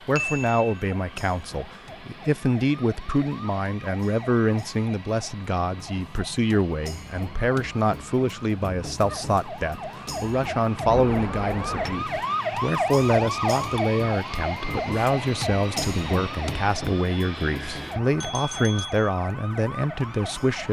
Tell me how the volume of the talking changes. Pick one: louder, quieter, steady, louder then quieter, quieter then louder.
steady.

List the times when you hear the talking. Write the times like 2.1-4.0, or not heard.
0.1-20.6.